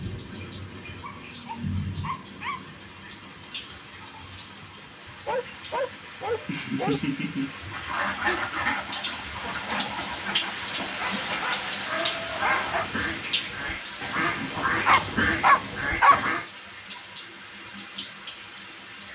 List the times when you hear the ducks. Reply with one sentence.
The ducks can be heard from 7.7 to 16.4 s.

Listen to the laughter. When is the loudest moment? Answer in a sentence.
The loudest moment of the laughter is at 7 seconds.